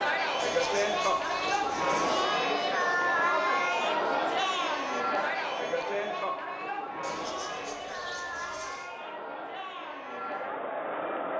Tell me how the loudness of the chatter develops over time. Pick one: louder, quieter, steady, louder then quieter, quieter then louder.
quieter.